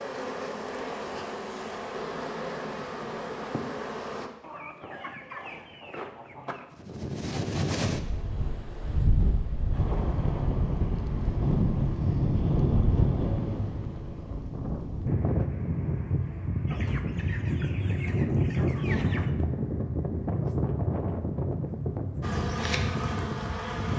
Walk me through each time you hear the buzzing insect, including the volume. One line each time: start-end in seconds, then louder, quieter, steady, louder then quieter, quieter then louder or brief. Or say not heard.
0.0-4.3 steady
22.2-23.9 brief.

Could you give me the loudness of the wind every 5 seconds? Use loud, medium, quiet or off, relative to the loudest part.
off, loud, loud, loud, loud.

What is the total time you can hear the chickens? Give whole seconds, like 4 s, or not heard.
5 s.